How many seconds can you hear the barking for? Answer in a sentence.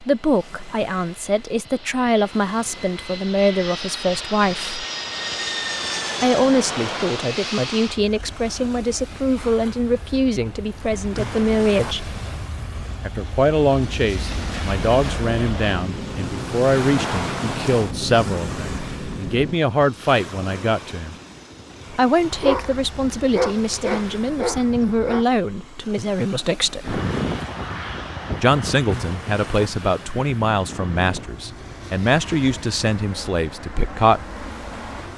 You can hear the barking for 3 seconds altogether.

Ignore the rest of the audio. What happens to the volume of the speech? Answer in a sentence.
The volume of the speech stays about the same.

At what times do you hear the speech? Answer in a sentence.
The speech can be heard from 0.0 to 4.8 s, from 6.2 to 12.2 s, from 13.0 to 21.1 s, from 21.9 to 27.0 s and from 28.4 to 34.2 s.